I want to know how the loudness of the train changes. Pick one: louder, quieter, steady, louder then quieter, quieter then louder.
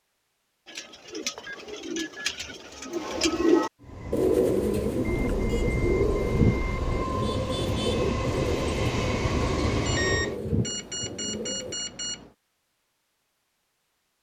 louder.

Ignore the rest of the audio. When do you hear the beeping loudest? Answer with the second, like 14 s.
10 s.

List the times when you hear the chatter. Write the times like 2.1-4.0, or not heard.
not heard.